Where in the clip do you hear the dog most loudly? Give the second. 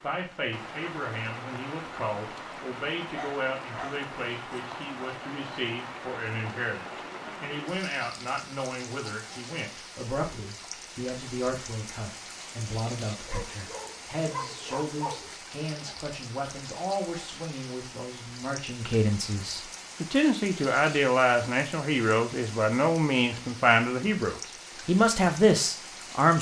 15 s.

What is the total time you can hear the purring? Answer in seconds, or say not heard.
not heard.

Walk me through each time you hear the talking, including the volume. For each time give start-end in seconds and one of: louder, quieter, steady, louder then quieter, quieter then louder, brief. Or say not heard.
0.0-26.3 louder.